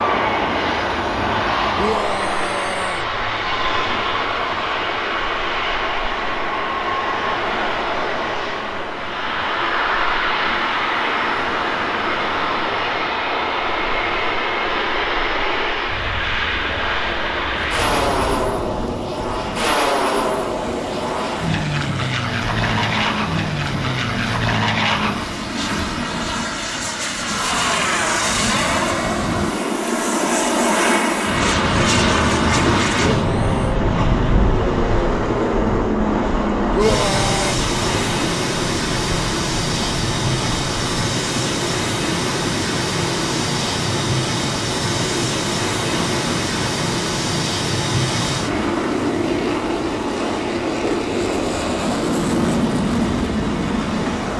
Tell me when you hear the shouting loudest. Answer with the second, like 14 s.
37 s.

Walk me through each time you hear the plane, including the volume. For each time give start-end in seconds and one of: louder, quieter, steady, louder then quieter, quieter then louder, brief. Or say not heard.
0.0-54.3 steady.